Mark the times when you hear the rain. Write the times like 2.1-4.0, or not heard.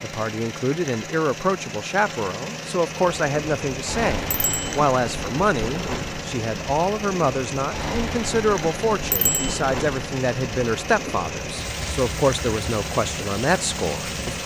3.0-14.4.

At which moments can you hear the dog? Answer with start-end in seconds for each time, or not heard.
not heard.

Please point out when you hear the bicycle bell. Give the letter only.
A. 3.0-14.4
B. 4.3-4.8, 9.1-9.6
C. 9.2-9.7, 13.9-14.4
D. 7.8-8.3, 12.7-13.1
B.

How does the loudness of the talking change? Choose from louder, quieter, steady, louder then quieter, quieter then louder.
steady.